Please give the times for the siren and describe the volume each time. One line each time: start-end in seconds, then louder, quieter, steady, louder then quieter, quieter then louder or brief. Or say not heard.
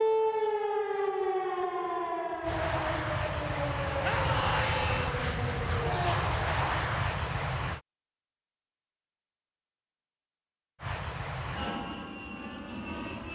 0.0-6.2 quieter.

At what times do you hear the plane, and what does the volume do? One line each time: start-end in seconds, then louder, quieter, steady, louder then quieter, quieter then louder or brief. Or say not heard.
2.4-7.8 steady
10.8-13.3 brief.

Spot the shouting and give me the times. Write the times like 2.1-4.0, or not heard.
4.0-5.2.